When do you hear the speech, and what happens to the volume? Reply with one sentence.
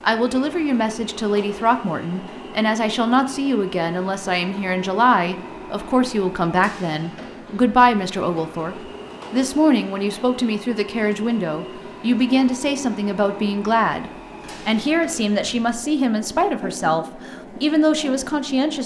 The speech can be heard from 0.0 to 18.8 s, at a steady volume.